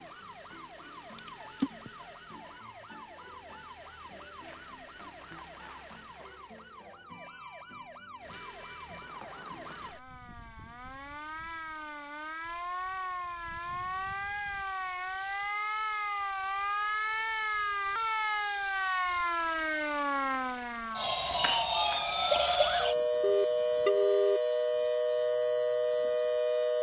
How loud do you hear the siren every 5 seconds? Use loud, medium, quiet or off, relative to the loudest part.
quiet, quiet, medium, loud, loud, loud.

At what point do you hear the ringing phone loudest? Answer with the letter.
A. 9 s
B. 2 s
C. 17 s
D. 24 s
D.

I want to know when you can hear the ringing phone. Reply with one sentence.
You can hear the ringing phone from 1.1 to 1.9 s and from 23.2 to 24.4 s.